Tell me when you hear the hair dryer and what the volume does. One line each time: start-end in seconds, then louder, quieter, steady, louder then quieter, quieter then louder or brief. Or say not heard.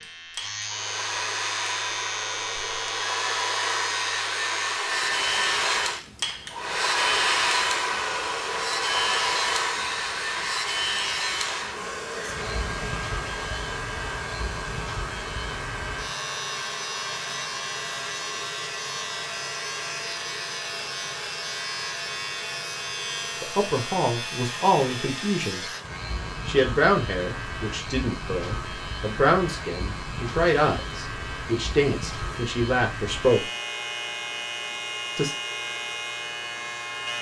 0.0-37.1 quieter.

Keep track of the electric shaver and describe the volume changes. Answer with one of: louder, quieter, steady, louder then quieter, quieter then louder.
steady.